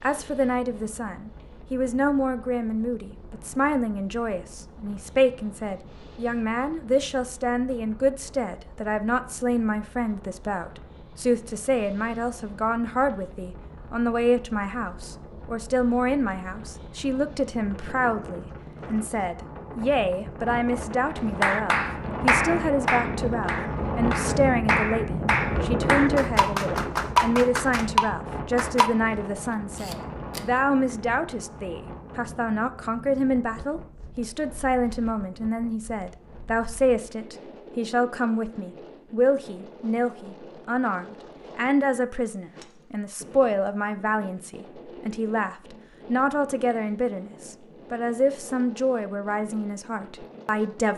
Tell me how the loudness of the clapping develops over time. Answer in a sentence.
The loudness of the clapping goes down, then up.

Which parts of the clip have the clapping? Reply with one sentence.
The clapping can be heard from 21.4 to 28.9 s.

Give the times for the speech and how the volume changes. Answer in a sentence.
You can hear the speech from 0.0 to 50.9 s, at a steady volume.